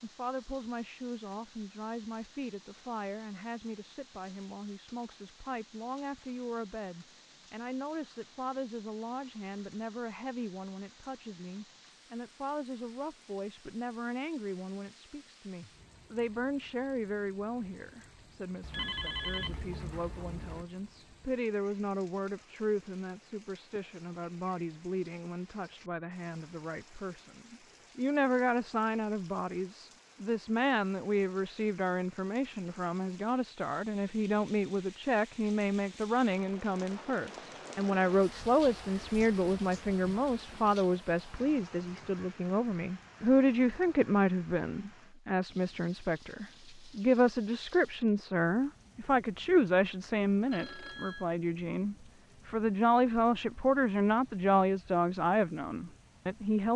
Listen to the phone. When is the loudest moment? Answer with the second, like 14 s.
19 s.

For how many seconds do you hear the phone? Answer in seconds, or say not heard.
3 s.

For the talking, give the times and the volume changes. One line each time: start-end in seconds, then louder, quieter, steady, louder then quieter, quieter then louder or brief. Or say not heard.
0.0-56.7 louder.